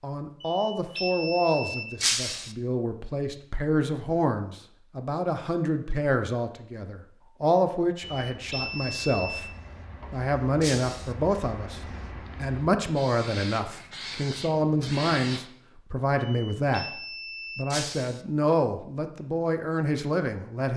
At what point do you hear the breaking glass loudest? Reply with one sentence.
The loudest moment of the breaking glass is at 2 seconds.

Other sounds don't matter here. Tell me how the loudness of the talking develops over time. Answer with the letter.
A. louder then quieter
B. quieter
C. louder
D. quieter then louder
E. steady
E.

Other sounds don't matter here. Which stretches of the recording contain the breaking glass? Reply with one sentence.
The breaking glass can be heard from 2.0 to 2.5 s, from 10.6 to 11.2 s and from 17.7 to 18.2 s.